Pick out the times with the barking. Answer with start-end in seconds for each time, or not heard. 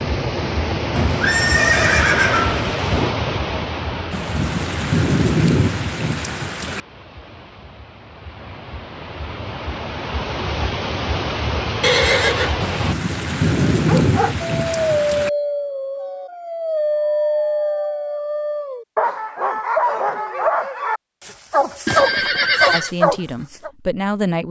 13.7-23.7.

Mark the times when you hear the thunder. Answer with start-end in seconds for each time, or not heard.
4.1-6.8, 12.6-15.3.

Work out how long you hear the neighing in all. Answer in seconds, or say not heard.
4 s.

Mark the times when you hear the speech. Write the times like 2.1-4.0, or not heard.
22.7-24.4.